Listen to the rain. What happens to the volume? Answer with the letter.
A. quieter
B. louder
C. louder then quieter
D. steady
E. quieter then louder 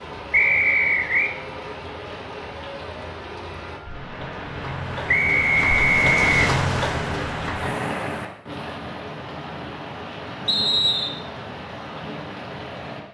C.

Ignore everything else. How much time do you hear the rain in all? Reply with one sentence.
You can hear the rain for 13 seconds altogether.